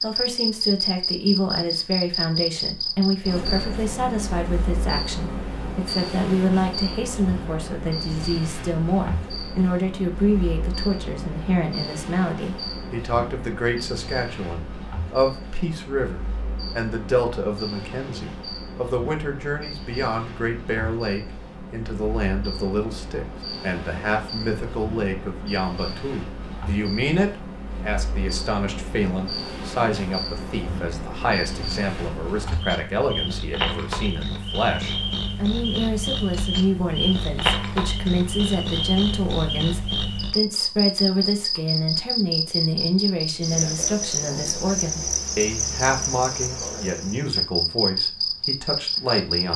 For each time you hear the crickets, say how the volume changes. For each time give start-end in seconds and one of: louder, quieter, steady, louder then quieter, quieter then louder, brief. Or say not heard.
0.0-49.5 quieter then louder.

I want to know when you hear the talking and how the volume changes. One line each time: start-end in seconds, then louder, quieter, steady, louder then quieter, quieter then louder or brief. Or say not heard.
0.0-49.5 steady.